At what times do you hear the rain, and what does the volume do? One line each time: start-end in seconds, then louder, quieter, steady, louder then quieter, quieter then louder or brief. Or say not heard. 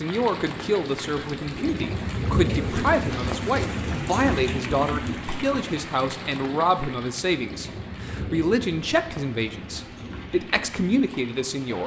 0.0-11.8 quieter.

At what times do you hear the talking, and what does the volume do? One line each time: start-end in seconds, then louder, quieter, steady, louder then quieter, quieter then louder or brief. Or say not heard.
0.0-11.8 steady.